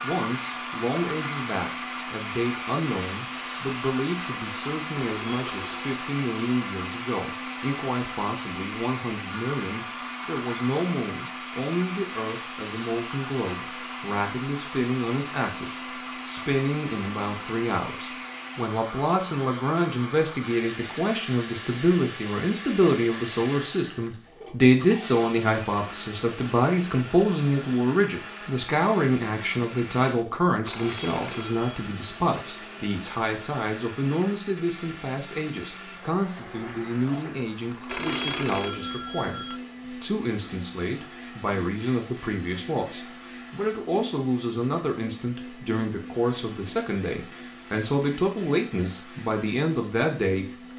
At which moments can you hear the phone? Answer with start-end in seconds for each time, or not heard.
5.0-5.9, 30.6-31.9, 37.9-39.6.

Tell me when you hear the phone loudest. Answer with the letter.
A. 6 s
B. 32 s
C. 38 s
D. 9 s
C.